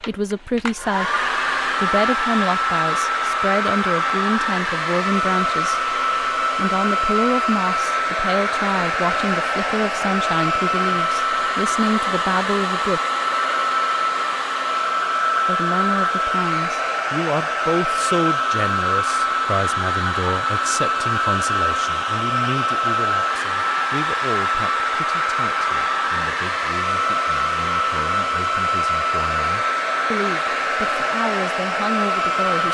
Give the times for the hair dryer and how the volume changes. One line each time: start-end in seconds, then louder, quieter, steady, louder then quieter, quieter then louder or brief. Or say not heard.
0.0-32.7 steady.